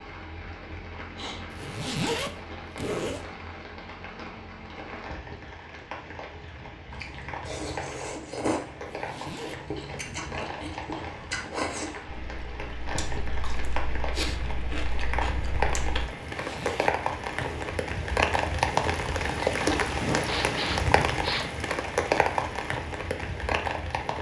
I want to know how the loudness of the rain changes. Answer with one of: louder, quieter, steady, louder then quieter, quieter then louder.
louder.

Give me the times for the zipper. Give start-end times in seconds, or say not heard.
1.5-3.2, 8.9-9.6, 16.2-17.7.